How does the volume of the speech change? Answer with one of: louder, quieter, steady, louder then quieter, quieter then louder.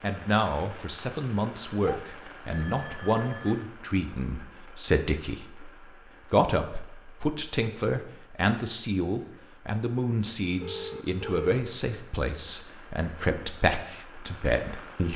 steady.